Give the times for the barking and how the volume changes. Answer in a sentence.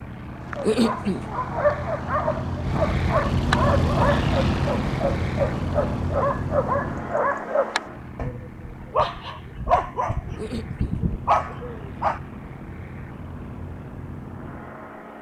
You can hear the barking from 0.5 to 12.2 s, at a steady volume.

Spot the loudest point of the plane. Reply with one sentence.
The volume of the plane peaks at 4 seconds.